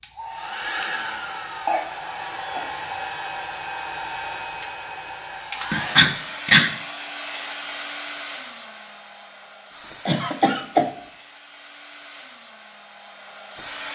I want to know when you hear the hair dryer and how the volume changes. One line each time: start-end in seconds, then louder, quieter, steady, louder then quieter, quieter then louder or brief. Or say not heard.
0.0-13.9 quieter.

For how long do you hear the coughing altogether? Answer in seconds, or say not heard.
3 s.